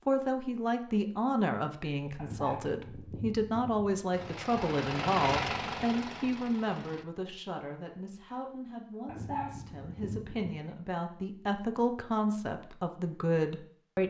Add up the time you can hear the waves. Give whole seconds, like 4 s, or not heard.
not heard.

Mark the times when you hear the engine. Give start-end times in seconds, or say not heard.
4.1-7.0.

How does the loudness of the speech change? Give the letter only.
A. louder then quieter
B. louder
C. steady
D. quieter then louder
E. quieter
D.